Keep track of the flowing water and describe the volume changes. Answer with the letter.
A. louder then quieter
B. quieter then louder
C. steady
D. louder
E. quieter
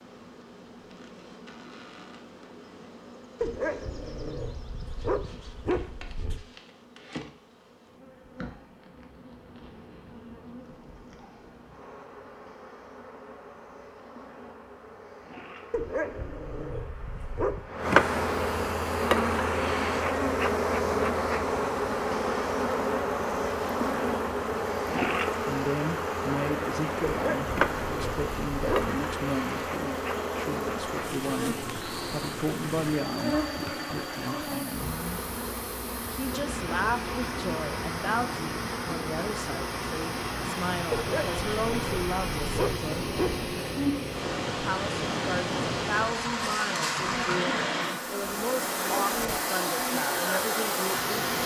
D.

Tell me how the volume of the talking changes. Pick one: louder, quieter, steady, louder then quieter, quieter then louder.
steady.